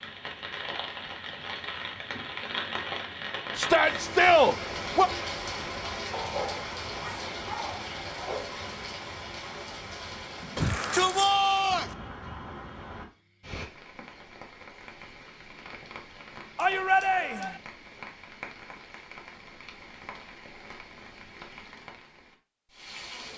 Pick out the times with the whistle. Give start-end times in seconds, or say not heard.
not heard.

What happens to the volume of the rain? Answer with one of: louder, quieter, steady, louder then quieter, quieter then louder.
quieter.